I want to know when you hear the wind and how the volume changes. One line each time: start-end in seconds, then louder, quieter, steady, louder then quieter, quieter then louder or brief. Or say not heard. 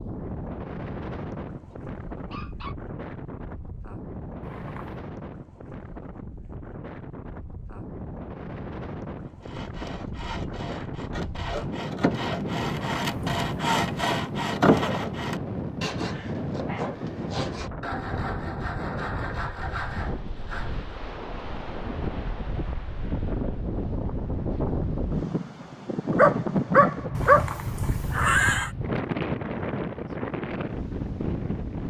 0.0-31.8 louder.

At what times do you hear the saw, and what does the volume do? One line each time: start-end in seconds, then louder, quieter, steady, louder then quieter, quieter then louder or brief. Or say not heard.
9.4-20.9 louder then quieter.